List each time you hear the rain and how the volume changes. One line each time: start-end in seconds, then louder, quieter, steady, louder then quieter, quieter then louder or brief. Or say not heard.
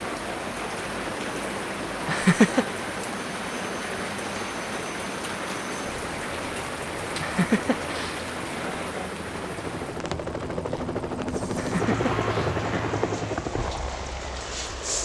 0.0-15.0 quieter.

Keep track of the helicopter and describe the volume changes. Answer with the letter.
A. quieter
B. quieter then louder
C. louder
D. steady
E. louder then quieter
C.